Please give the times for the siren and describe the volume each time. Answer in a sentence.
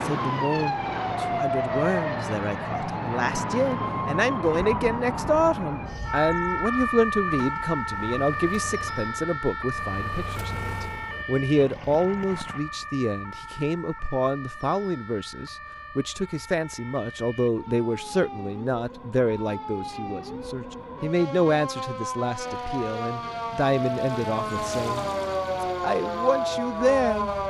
You can hear the siren from 0.0 to 27.4 s, getting quieter then louder.